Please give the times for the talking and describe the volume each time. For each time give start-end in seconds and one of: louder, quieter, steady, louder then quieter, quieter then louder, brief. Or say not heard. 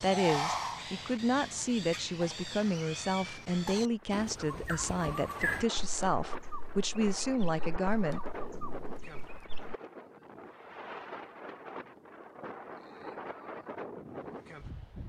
0.0-8.2 steady.